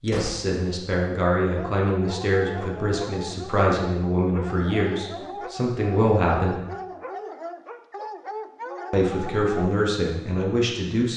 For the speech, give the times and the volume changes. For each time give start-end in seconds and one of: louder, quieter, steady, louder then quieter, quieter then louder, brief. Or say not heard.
0.0-6.6 steady
8.9-11.1 brief.